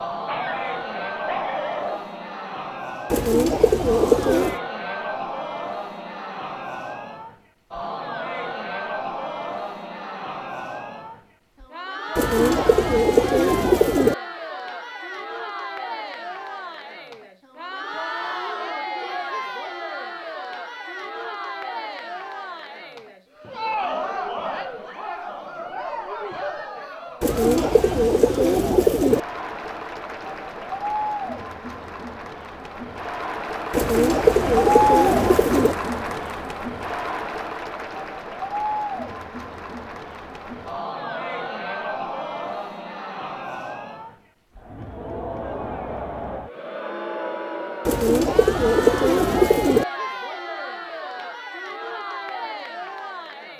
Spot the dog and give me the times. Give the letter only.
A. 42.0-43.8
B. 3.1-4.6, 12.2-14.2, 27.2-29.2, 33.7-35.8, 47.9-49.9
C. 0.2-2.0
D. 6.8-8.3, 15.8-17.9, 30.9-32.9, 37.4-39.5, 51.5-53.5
C.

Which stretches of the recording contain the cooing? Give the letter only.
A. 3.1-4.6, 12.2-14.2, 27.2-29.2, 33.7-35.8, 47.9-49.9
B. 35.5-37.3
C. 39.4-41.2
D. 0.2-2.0
A.